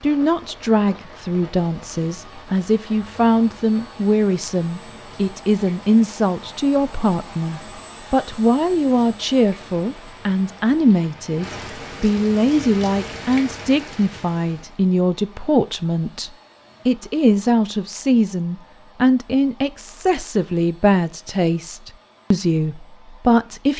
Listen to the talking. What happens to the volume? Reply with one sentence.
The loudness of the talking stays about the same.